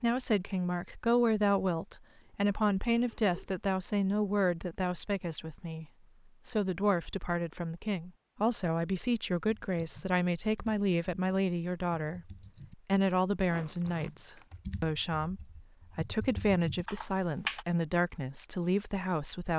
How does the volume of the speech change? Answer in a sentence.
The volume of the speech stays about the same.